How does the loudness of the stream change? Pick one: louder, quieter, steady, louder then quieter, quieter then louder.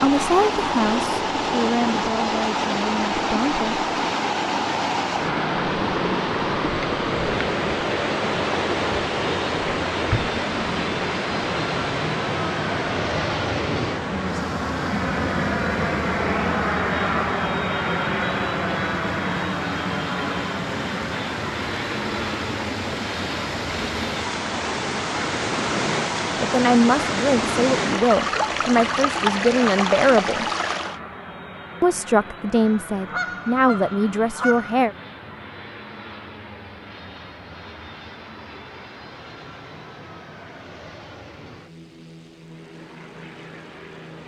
quieter then louder.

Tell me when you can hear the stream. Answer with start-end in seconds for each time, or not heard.
0.0-31.0.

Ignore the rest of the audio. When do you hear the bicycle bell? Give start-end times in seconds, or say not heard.
not heard.